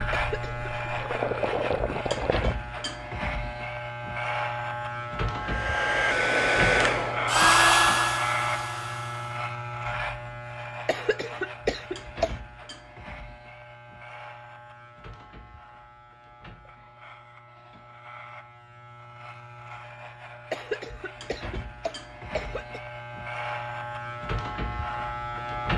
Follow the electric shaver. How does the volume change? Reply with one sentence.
The volume of the electric shaver goes down, then up.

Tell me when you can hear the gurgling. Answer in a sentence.
The gurgling can be heard from 0.0 to 2.5 s.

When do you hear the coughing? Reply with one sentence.
You can hear the coughing from 0.1 to 0.7 s, from 10.8 to 12.3 s and from 20.5 to 22.8 s.